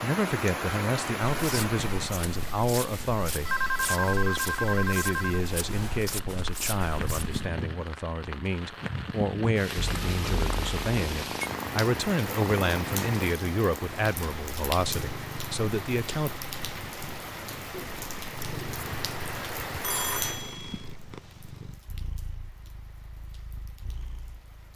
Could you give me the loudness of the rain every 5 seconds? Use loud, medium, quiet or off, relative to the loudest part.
loud, loud, loud, loud, medium.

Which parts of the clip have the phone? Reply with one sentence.
The phone can be heard from 3.5 to 5.4 s, from 9.8 to 11.4 s and from 19.8 to 20.9 s.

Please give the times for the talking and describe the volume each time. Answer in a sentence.
The talking can be heard from 0.0 to 16.4 s, at a steady volume.